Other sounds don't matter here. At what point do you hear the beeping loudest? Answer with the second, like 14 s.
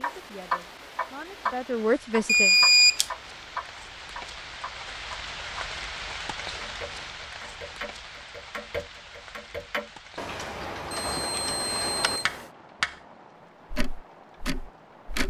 3 s.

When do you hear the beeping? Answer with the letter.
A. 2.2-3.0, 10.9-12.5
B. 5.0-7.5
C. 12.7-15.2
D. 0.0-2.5
A.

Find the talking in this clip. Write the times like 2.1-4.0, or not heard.
0.0-2.5.